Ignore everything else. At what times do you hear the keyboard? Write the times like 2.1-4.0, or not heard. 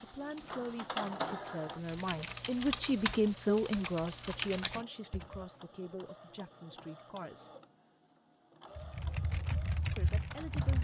0.0-5.5, 8.8-10.7.